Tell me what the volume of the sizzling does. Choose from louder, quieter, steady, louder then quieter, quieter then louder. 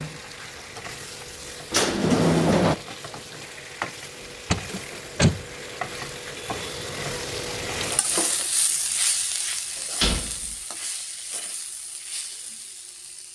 louder then quieter.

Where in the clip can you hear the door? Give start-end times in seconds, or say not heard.
1.7-2.8, 4.5-5.5, 10.0-10.6.